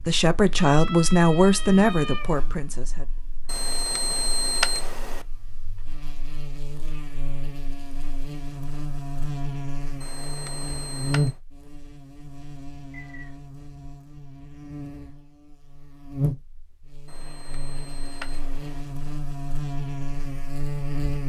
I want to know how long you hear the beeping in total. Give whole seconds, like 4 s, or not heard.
5 s.